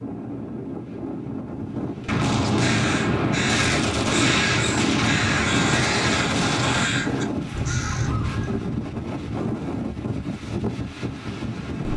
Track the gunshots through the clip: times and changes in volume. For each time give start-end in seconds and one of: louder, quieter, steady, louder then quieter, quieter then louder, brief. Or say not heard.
2.0-6.9 steady.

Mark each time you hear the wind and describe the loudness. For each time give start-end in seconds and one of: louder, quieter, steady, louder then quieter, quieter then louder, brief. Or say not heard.
0.0-11.9 steady.